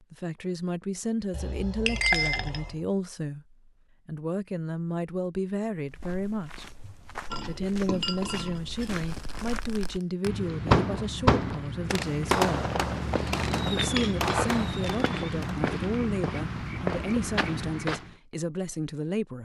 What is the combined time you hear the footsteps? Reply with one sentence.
You can hear the footsteps for 12 seconds altogether.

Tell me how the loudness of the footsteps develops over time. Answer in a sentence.
The loudness of the footsteps goes up.